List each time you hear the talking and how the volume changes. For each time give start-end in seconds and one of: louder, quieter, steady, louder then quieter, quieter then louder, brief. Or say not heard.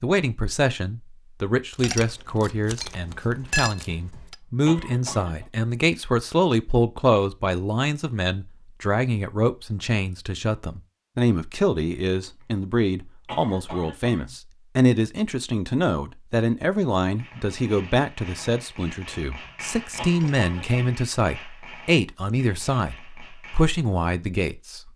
0.0-24.8 steady.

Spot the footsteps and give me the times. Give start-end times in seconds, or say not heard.
not heard.